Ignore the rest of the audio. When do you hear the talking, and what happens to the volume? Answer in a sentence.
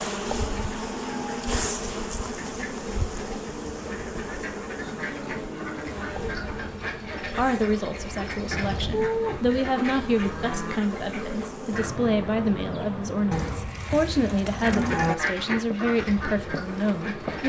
You can hear the talking from 7.2 to 17.4 s, at a steady volume.